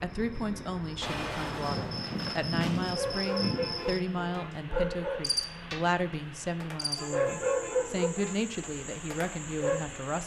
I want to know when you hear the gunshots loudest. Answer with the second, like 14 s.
1 s.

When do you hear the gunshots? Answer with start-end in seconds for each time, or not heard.
1.0-3.0.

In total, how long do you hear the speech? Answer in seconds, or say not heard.
10 s.